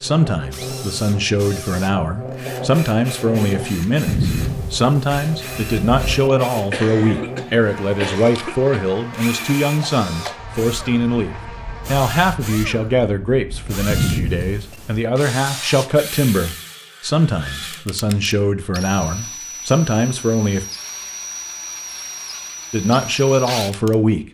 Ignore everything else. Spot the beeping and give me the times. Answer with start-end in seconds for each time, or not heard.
4.0-6.3, 13.8-15.0.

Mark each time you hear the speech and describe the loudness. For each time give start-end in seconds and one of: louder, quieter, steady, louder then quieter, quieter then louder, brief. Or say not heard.
0.0-20.6 steady
22.7-24.2 brief.